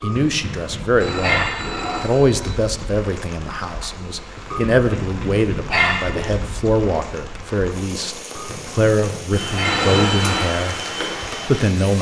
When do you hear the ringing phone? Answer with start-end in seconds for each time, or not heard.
0.9-2.6, 9.6-10.5.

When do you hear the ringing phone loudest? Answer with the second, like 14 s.
10 s.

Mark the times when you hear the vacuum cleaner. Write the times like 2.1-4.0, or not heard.
9.3-11.9.